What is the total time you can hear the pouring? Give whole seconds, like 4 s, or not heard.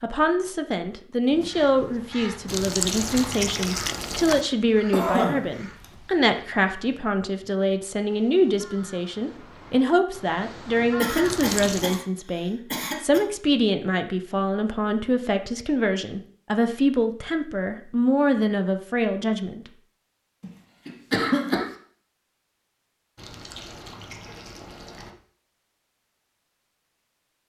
5 s.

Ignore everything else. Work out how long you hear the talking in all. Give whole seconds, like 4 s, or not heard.
20 s.